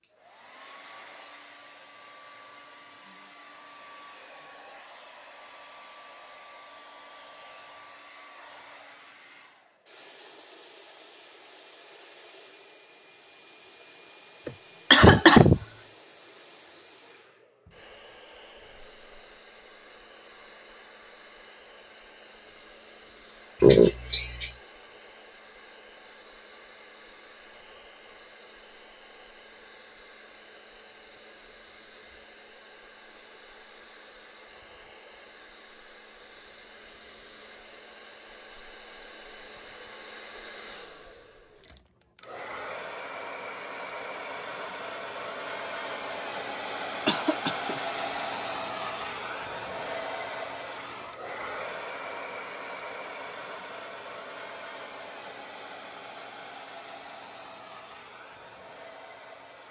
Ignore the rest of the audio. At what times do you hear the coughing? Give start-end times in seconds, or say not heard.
14.4-15.6, 23.6-24.5, 47.0-47.8.